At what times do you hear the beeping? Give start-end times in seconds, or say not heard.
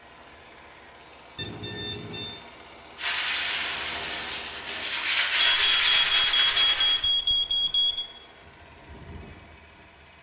1.4-2.4, 5.3-8.1.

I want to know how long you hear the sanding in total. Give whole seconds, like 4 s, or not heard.
4 s.